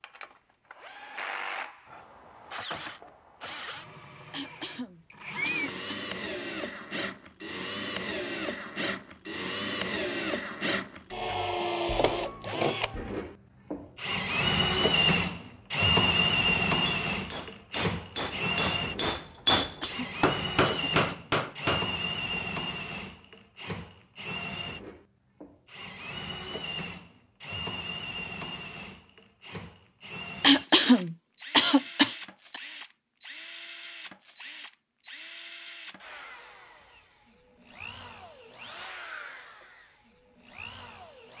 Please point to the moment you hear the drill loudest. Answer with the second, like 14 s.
16 s.